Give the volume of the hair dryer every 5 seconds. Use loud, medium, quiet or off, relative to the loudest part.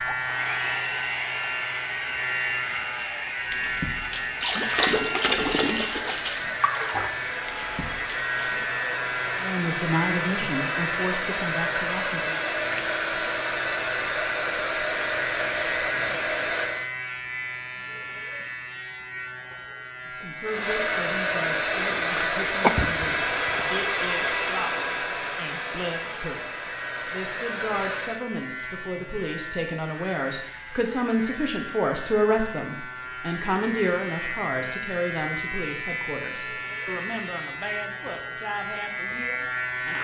medium, medium, loud, loud, loud, medium, off, off.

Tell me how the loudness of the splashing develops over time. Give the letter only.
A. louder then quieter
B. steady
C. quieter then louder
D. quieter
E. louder
A.